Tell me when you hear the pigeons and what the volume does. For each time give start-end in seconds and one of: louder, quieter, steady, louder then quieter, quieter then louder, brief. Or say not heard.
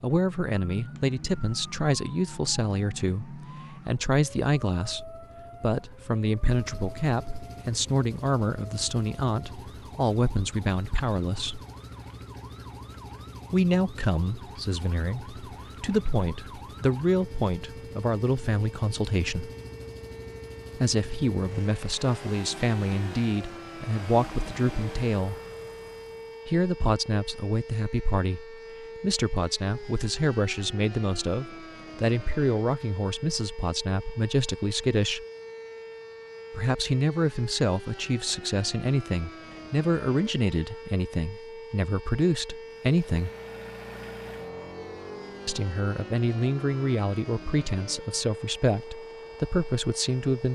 not heard.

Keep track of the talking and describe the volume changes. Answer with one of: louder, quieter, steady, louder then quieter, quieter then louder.
steady.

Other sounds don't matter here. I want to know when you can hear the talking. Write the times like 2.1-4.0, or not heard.
0.0-11.6, 13.5-19.5, 20.8-25.4, 26.4-35.2, 36.5-43.3, 45.5-50.4.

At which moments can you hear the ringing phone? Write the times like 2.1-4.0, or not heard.
not heard.